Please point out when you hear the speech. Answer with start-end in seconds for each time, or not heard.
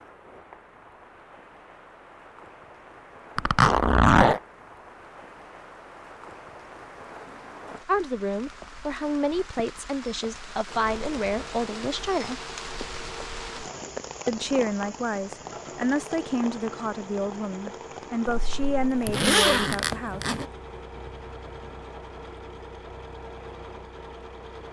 7.8-12.4, 14.2-20.2.